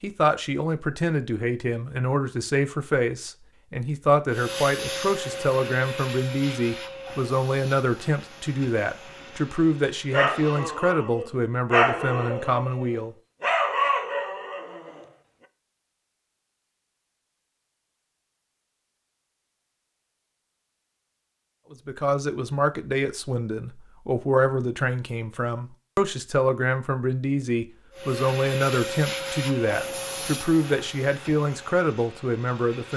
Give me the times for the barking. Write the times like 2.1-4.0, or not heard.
10.1-15.1.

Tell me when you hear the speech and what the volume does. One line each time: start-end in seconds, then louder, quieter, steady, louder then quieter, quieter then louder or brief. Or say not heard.
0.0-13.2 steady
21.7-32.9 steady.